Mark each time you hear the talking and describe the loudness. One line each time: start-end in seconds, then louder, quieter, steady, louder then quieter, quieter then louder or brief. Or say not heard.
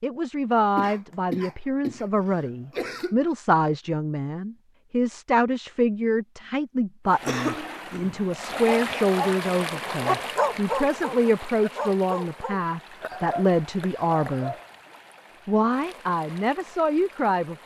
0.0-14.6 steady
15.4-17.6 brief.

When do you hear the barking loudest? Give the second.
10 s.